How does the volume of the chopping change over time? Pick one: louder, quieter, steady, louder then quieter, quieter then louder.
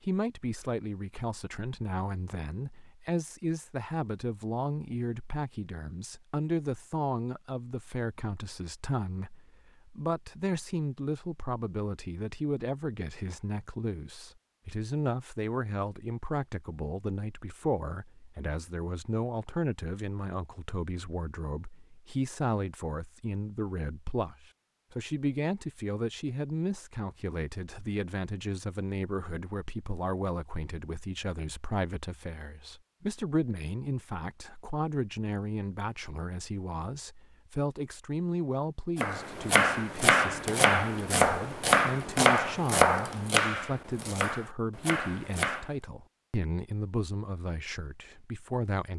quieter.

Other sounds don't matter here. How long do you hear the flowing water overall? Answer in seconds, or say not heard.
not heard.